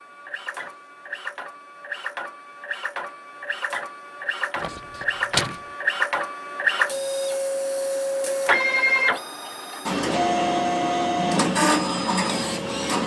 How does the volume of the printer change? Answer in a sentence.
The volume of the printer goes up.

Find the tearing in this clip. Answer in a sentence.
You can hear the tearing from 4.5 to 5.6 s.